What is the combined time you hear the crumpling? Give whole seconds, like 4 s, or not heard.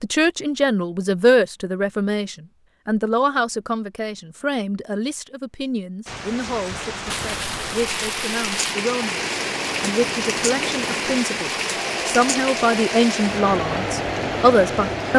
2 s.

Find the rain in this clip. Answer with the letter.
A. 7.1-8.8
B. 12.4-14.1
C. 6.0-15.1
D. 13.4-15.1
C.